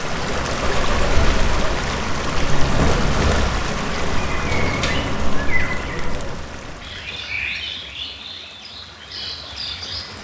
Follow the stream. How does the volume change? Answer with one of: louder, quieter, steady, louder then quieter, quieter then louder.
quieter.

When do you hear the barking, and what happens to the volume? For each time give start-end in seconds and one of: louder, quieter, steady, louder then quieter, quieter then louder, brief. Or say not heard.
not heard.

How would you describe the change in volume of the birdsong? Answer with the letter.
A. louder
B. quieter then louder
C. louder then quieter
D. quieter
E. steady
D.